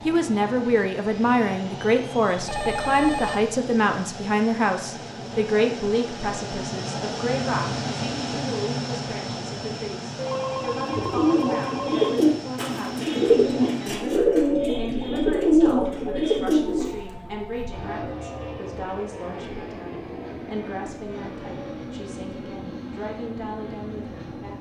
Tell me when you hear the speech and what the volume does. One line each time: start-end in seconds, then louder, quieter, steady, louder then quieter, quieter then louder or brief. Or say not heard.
0.1-24.5 quieter.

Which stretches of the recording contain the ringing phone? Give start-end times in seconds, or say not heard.
2.5-3.5, 10.2-12.2, 16.8-17.8.